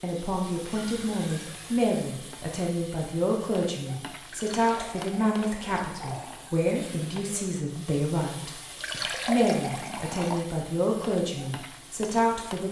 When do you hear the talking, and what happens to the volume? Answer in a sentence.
The talking can be heard from 0.0 to 12.6 s, at a steady volume.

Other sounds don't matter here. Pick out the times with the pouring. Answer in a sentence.
You can hear the pouring from 0.7 to 1.9 s, from 4.2 to 6.5 s and from 8.8 to 10.5 s.